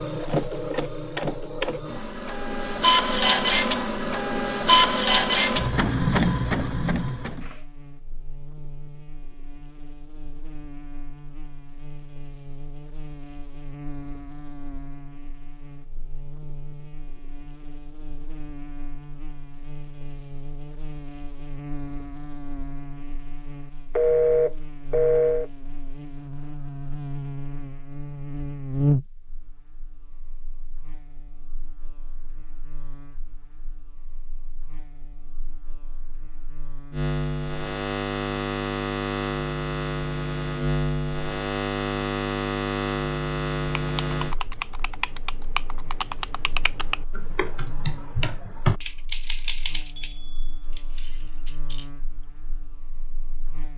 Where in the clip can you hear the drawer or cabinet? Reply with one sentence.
The drawer or cabinet can't be heard in this clip.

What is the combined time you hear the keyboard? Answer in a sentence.
The keyboard can be heard for 8 seconds in total.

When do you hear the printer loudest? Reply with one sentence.
The loudest moment of the printer is at 5 seconds.